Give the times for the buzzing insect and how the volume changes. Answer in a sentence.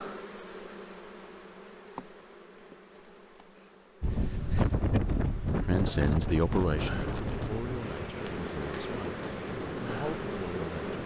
The buzzing insect can be heard from 0.0 to 11.0 s, getting quieter then louder.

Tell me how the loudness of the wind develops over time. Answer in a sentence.
The volume of the wind goes down.